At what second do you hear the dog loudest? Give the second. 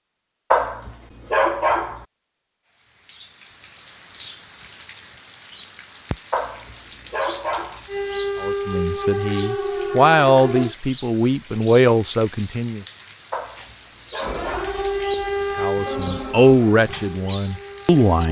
2 s.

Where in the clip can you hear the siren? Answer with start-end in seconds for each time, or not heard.
7.8-10.8, 14.2-18.2.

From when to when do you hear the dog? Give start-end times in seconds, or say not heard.
0.5-2.0, 6.3-7.8, 13.3-14.8.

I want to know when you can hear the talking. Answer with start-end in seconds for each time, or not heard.
8.4-12.8, 15.6-18.2.